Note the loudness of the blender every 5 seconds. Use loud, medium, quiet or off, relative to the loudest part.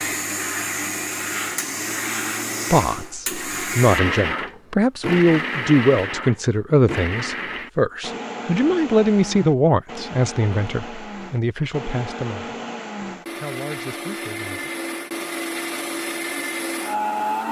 loud, loud, medium, loud.